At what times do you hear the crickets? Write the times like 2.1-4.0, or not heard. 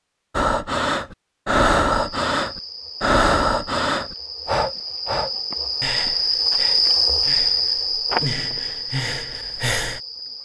1.9-10.4.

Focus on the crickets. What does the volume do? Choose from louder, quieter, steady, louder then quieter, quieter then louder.
louder then quieter.